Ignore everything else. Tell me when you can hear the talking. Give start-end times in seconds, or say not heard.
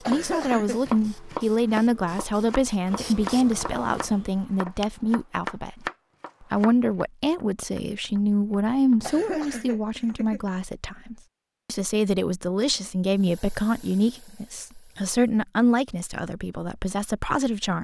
0.1-5.8, 6.5-17.7.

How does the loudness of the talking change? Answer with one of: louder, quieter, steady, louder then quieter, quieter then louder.
steady.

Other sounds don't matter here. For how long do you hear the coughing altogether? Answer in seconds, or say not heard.
2 s.